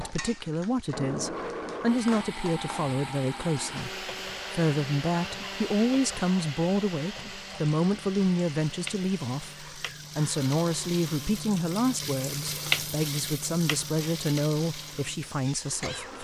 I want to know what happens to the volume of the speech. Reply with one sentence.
The volume of the speech stays about the same.